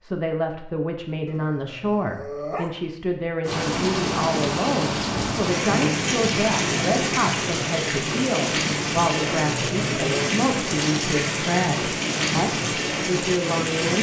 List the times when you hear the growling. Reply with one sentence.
You can hear the growling from 1.2 to 2.7 s and from 9.2 to 10.3 s.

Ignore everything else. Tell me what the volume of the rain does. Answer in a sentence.
The loudness of the rain stays about the same.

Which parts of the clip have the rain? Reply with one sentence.
You can hear the rain from 3.4 to 13.9 s.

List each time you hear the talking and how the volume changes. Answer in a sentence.
You can hear the talking from 0.0 to 13.9 s, at a steady volume.